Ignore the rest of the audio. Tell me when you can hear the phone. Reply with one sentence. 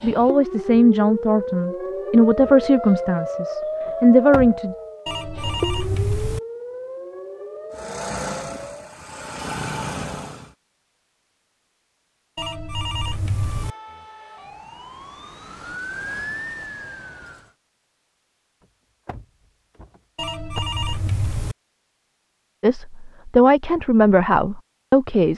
The phone can be heard from 5.0 to 6.4 s, from 12.3 to 13.8 s and from 20.1 to 21.6 s.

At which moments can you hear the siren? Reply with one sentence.
The siren can be heard from 0.0 to 9.0 s and from 13.4 to 17.6 s.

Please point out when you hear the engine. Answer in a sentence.
You can hear the engine from 7.7 to 10.6 s.